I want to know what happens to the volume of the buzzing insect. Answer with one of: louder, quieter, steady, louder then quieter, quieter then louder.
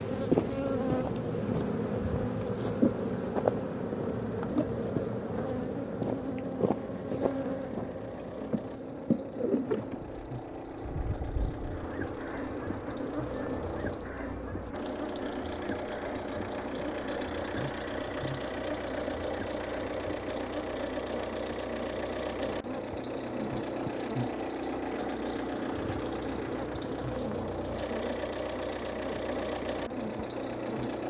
quieter.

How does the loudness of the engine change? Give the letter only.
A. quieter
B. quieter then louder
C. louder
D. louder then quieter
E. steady
C.